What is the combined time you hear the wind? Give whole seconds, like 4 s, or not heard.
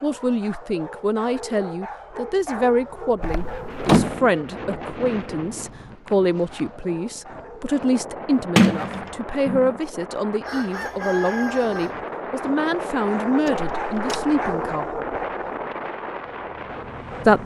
14 s.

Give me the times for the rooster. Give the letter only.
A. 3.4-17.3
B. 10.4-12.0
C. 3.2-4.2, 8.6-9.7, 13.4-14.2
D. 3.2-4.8
B.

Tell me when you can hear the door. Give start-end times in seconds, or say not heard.
3.2-4.2, 8.6-9.7, 13.4-14.2.